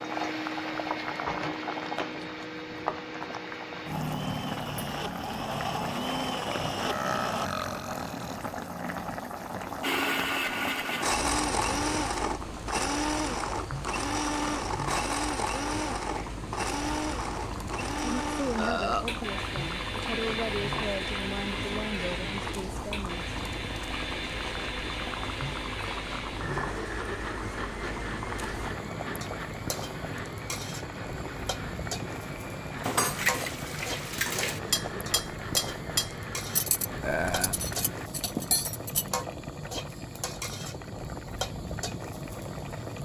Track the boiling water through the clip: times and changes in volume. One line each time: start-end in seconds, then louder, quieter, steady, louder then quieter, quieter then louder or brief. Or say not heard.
0.0-43.0 steady.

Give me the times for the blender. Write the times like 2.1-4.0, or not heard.
0.0-7.5, 9.8-38.1.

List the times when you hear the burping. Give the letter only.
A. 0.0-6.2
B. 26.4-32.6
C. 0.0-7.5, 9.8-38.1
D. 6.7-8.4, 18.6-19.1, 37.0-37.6
D.